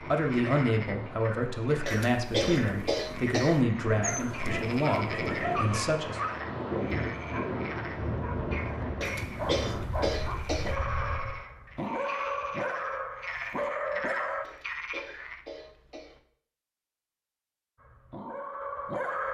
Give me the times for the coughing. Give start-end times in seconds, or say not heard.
1.9-3.6, 9.0-10.8, 14.4-16.2.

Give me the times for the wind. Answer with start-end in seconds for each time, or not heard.
0.0-11.4.